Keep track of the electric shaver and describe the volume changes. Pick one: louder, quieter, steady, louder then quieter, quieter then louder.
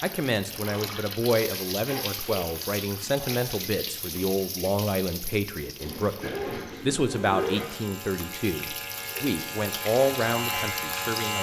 louder.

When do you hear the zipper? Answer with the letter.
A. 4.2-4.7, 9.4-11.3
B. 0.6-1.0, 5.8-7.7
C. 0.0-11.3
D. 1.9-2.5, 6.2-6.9
B.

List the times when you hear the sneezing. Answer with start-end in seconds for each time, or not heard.
1.9-2.5, 6.2-6.9.